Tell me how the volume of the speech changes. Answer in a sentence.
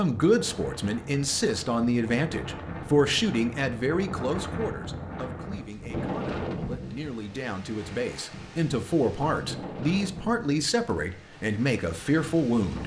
The volume of the speech goes down, then up.